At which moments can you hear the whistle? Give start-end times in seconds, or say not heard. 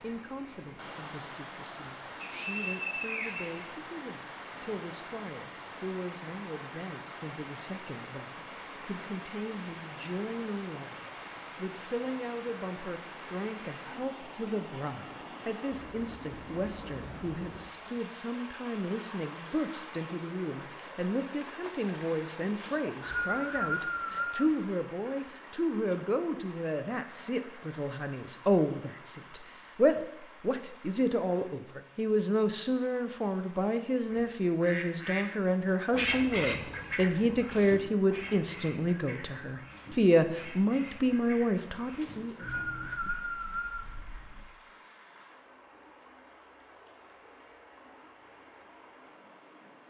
2.2-4.2, 22.6-24.5, 42.0-43.9.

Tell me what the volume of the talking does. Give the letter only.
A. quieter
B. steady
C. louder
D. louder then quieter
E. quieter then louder
C.